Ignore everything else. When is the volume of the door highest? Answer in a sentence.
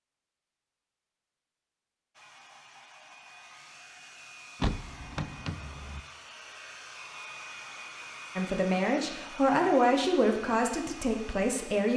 The loudest moment of the door is at 5 seconds.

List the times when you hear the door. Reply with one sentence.
You can hear the door from 4.6 to 6.0 s.